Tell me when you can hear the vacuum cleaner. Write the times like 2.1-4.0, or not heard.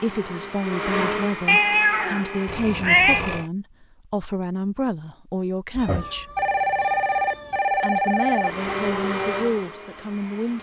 0.0-2.7, 8.4-10.5.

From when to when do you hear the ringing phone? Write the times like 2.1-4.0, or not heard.
2.5-3.5, 6.3-8.7.